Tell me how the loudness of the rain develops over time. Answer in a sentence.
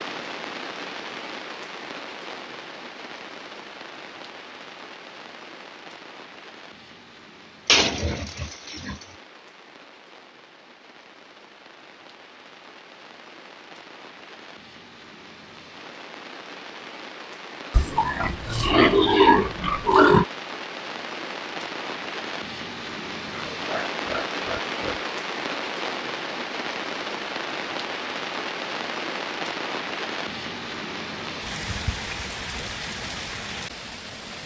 The volume of the rain goes down, then up.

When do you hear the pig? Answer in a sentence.
You can hear the pig from 7.7 to 8.9 s, from 17.7 to 20.2 s and from 23.3 to 25.0 s.